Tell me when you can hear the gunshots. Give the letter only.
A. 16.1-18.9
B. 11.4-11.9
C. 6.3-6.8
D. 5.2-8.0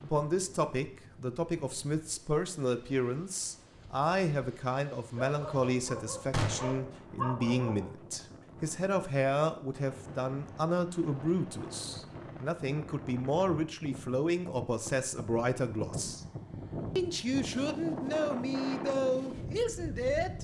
C.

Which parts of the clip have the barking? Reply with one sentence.
You can hear the barking from 5.2 to 8.0 s.